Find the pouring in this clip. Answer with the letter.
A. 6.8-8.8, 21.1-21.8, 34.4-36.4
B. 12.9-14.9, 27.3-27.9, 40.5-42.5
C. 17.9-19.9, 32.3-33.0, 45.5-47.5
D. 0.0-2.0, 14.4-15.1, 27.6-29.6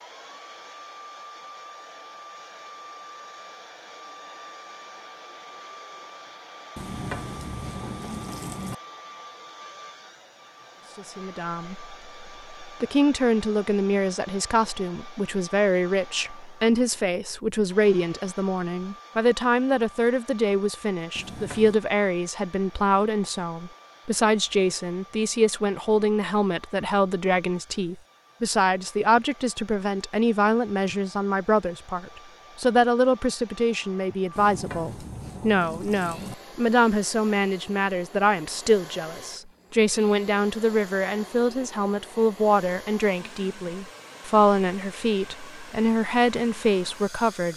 A.